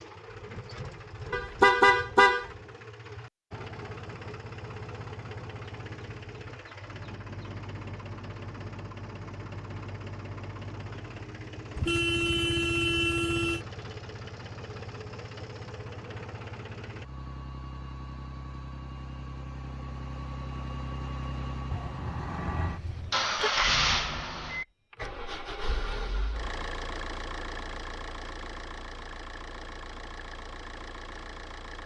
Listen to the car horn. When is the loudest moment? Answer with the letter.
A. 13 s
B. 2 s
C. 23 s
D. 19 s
B.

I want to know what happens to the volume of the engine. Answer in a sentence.
The volume of the engine goes up, then down.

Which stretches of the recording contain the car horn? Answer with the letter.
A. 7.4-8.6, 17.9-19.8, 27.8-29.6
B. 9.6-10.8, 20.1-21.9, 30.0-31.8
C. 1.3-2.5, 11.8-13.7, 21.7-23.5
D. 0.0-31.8
C.